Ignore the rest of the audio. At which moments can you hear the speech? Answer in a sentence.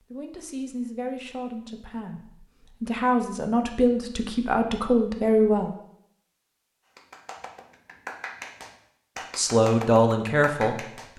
The speech can be heard from 0.1 to 5.8 s and from 9.3 to 11.1 s.